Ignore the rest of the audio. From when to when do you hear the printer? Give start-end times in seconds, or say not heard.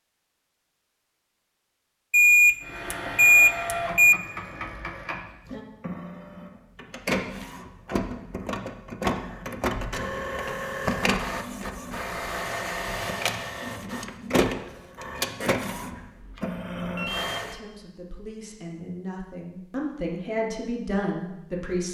2.6-17.6.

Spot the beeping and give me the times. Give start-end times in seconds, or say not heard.
2.1-4.2, 15.9-17.3.